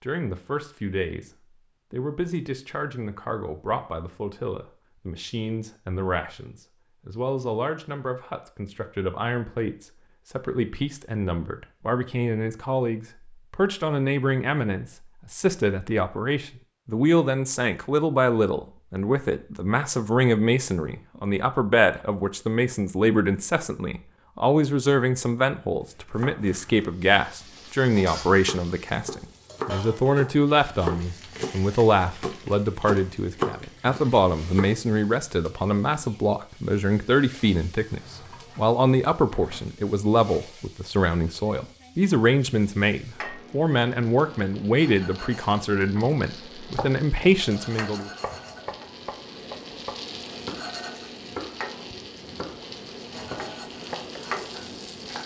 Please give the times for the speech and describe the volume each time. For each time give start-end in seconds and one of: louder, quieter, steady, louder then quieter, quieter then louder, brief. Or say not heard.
0.0-1.3 brief
1.9-48.1 louder.